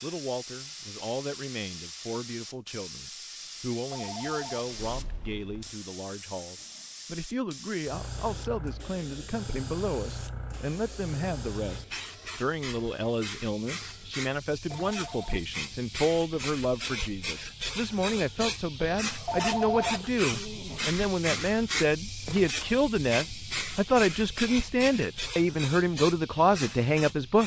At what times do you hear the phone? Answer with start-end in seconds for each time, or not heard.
3.9-5.8, 14.8-15.4, 19.2-20.1.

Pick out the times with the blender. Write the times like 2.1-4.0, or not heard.
not heard.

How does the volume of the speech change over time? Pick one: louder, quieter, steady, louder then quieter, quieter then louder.
louder.